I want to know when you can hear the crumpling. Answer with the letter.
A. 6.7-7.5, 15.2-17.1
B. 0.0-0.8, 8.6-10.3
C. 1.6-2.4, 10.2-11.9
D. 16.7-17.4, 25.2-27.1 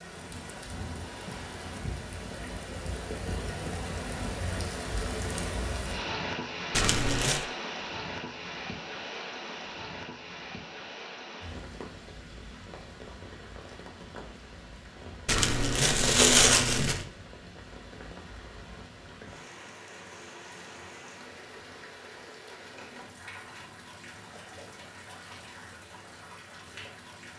A.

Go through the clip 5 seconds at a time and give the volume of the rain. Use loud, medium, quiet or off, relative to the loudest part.
loud, loud, medium, medium, medium, medium.